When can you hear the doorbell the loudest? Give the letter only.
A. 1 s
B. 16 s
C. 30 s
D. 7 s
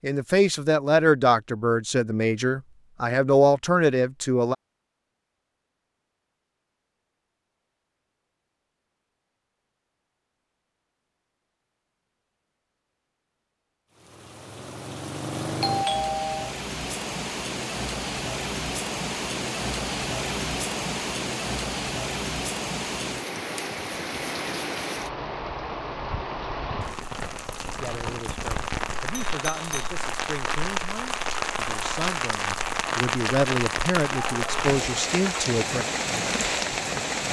B.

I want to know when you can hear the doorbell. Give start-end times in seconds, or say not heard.
15.6-16.6, 29.1-29.9.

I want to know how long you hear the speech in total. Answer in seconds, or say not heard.
13 s.